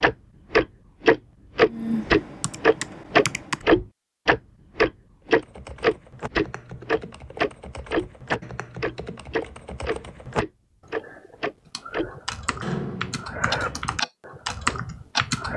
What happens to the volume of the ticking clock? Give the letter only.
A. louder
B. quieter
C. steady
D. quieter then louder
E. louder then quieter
B.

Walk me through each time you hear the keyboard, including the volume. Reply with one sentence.
You can hear the keyboard briefly from 1.6 to 3.6 s; and from 5.2 to 15.5 s, getting louder.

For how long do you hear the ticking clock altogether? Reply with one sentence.
The ticking clock can be heard for 15 seconds in total.